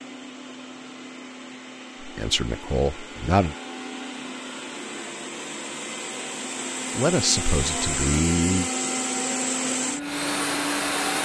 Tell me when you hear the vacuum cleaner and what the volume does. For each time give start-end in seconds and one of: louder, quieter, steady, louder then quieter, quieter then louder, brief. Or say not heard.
0.0-11.2 louder.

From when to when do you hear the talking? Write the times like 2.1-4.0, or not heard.
2.0-3.5, 7.0-8.7.